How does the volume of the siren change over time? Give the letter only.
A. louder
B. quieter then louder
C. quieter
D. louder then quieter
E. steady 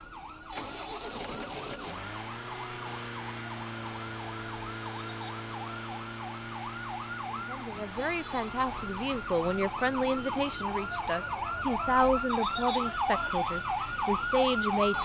A.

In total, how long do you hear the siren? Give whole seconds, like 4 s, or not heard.
15 s.